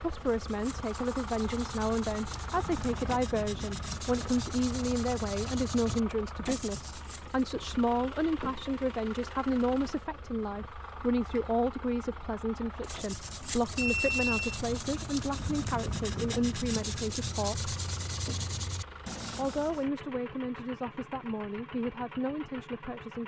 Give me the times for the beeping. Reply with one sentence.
You can hear the beeping from 13.8 to 14.6 s.